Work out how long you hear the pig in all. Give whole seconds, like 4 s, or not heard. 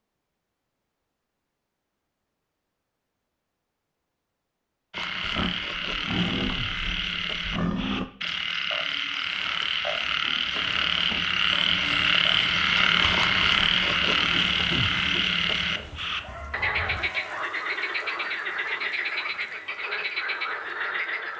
3 s.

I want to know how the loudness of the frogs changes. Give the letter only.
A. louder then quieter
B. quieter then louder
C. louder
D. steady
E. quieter
A.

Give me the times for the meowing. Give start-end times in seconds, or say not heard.
not heard.